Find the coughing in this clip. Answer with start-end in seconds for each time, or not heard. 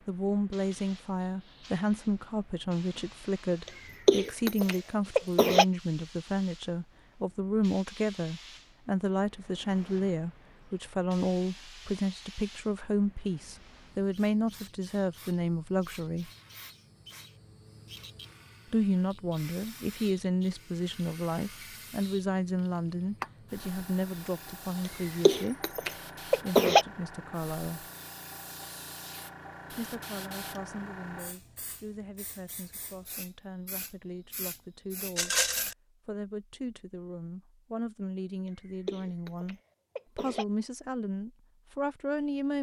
4.0-5.7, 24.9-26.9, 38.9-40.5.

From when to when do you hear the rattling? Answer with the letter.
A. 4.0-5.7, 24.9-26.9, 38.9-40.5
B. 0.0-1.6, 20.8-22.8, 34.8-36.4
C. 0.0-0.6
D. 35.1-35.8
D.